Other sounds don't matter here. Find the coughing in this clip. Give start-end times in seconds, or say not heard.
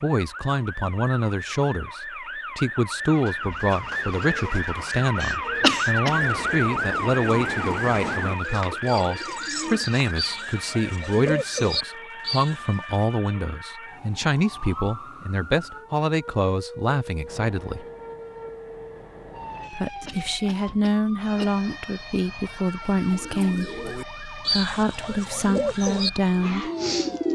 5.2-6.2, 19.6-21.5.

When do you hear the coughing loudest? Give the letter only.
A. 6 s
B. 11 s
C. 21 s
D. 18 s
A.